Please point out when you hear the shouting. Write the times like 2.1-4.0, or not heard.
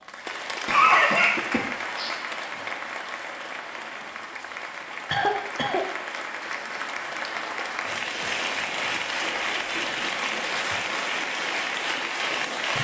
not heard.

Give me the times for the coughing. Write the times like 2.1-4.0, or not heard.
0.7-2.1, 5.0-5.8, 9.2-10.3.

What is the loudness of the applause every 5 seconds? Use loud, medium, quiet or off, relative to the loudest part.
medium, loud, loud.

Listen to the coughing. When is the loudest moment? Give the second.
1 s.